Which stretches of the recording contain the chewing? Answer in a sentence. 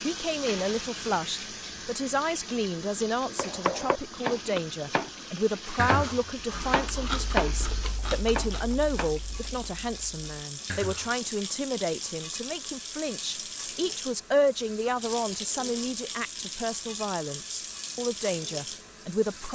You can hear the chewing from 4.3 to 11.2 s.